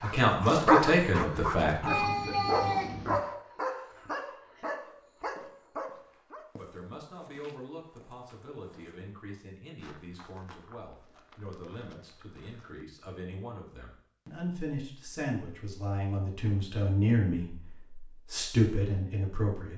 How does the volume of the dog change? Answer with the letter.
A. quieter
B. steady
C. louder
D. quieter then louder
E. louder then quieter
A.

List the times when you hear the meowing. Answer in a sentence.
You can hear the meowing from 1.9 to 3.2 s.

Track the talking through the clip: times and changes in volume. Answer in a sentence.
You can hear the talking briefly from 0.0 to 2.4 s; and from 6.5 to 19.7 s, getting louder.